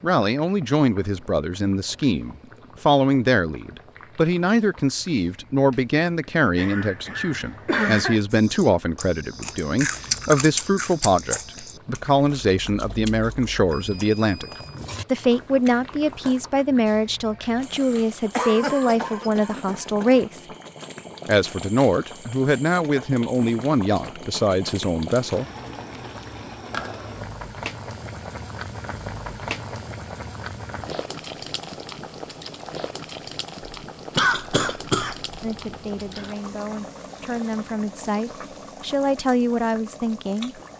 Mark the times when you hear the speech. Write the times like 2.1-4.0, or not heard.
0.0-20.4, 21.2-25.4, 35.4-40.5.